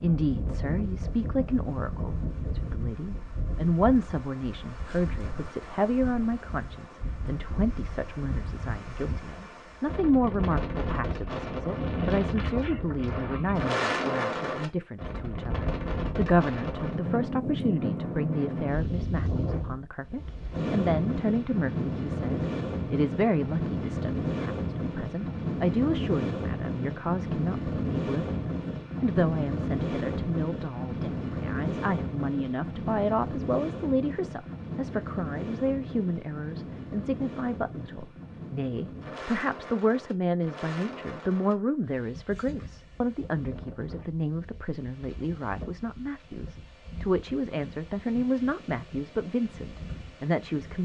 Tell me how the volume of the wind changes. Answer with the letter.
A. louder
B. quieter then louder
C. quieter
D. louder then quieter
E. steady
D.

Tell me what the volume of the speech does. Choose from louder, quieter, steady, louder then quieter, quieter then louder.
steady.